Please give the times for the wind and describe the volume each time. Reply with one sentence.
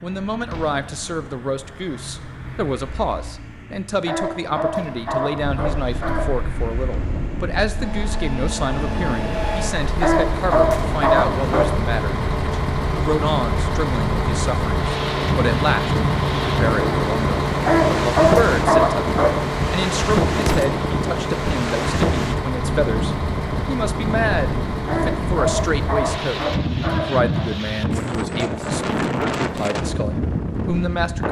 You can hear the wind from 5.3 to 31.2 s, getting louder.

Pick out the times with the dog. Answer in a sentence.
The dog can be heard from 4.0 to 6.3 s, from 10.0 to 11.7 s, from 17.6 to 19.4 s and from 24.9 to 27.5 s.